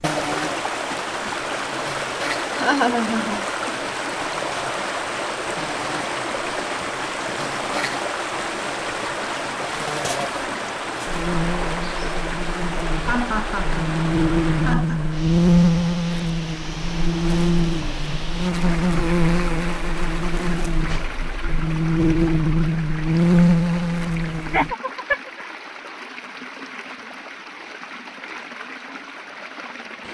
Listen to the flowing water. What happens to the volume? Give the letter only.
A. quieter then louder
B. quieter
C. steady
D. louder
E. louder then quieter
B.